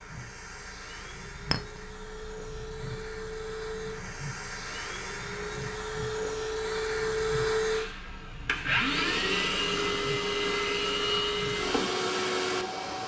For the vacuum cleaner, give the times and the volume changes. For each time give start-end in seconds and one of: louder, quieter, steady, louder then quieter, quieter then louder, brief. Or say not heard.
0.0-13.0 louder.